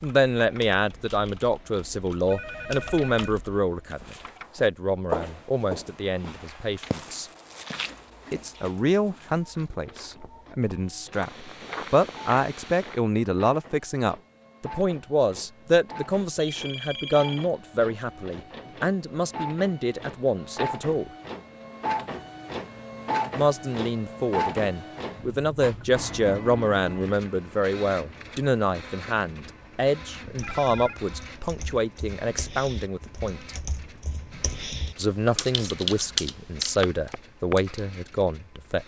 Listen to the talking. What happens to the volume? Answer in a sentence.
The loudness of the talking stays about the same.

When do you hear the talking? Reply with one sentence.
You can hear the talking from 0.0 to 7.3 s, from 8.3 to 21.1 s, from 23.4 to 33.5 s and from 35.0 to 38.8 s.